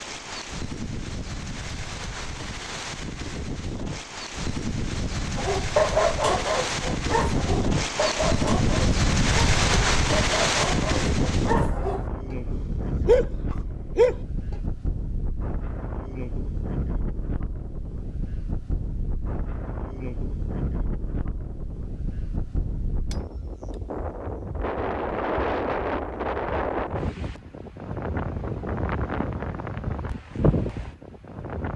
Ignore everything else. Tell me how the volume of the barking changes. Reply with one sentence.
The loudness of the barking goes down, then up.